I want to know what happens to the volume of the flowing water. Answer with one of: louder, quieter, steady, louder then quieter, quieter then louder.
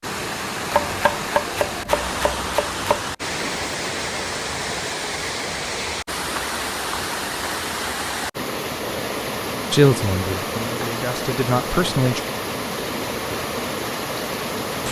steady.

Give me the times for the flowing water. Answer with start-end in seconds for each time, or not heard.
0.0-14.8.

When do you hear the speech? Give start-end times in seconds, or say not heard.
9.7-12.2.